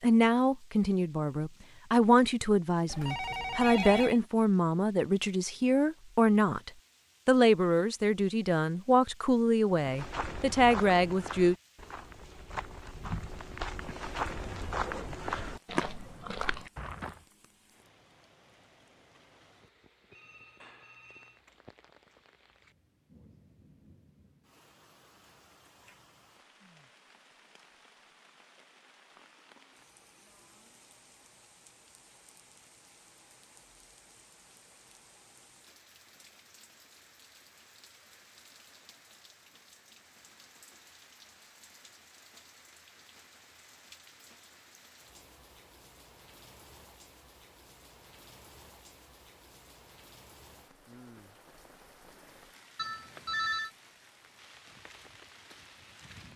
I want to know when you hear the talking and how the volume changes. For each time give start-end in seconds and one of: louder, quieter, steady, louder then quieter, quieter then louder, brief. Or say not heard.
0.0-11.6 steady.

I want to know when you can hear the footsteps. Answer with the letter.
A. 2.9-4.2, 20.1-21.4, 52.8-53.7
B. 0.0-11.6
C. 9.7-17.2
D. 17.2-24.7
C.